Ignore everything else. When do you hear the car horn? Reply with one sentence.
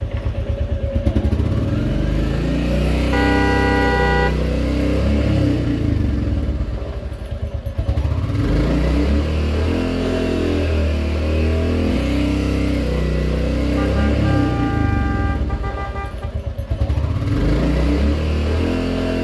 The car horn can be heard from 3.1 to 4.4 s, from 9.9 to 10.5 s and from 13.8 to 16.3 s.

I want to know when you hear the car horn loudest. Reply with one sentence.
The volume of the car horn peaks at 4 seconds.